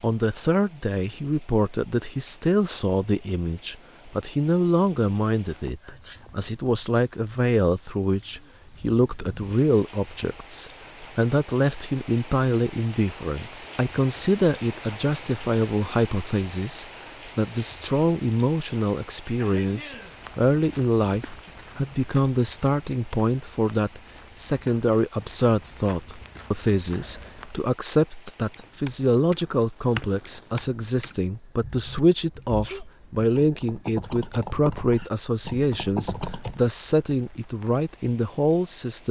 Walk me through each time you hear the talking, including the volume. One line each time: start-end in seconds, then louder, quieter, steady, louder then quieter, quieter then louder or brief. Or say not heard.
0.0-39.0 steady.